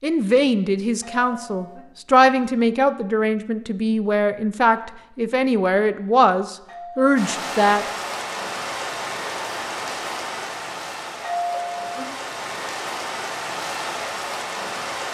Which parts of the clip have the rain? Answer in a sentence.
You can hear the rain from 7.2 to 15.1 s.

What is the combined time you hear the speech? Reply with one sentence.
You can hear the speech for 8 seconds altogether.